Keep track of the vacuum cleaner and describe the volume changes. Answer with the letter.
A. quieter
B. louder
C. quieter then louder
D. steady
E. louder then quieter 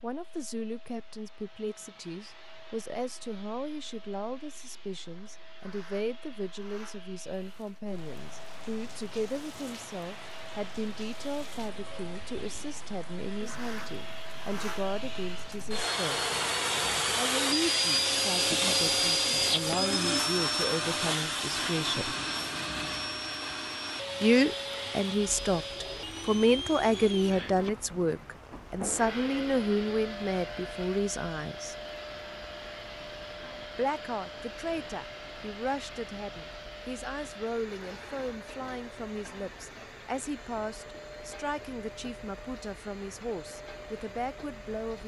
E.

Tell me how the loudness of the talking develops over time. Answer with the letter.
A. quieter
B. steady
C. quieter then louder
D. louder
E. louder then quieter
E.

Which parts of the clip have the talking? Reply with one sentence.
You can hear the talking from 0.0 to 16.2 s, from 17.1 to 22.1 s, from 24.2 to 31.8 s and from 33.8 to 45.0 s.